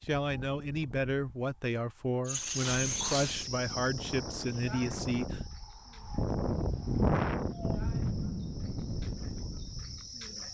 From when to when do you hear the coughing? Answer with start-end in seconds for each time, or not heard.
not heard.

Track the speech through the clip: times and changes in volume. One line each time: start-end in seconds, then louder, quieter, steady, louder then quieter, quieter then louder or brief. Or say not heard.
0.0-5.4 steady.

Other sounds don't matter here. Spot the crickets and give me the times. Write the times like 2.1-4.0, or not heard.
2.2-10.5.